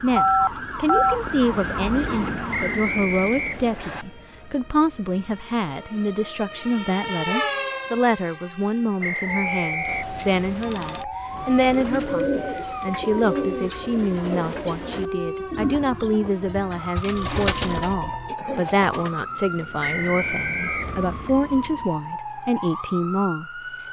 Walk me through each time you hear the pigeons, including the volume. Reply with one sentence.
You can hear the pigeons from 11.2 to 19.2 s, getting quieter then louder.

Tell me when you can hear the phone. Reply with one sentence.
You can hear the phone from 0.1 to 1.2 s, from 9.8 to 11.1 s and from 17.1 to 18.3 s.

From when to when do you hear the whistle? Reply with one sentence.
The whistle can be heard from 2.5 to 4.0 s, from 9.0 to 10.1 s and from 19.8 to 21.1 s.